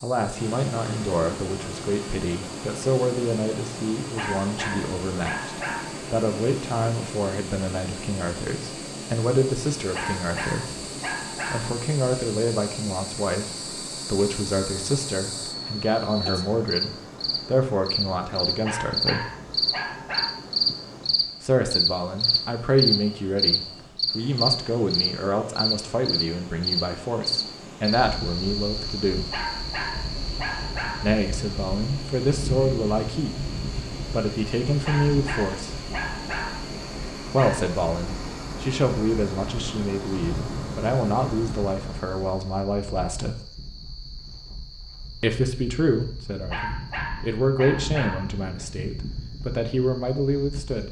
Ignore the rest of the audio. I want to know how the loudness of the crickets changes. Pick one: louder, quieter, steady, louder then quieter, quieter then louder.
louder then quieter.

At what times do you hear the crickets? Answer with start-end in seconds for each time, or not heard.
0.0-50.8.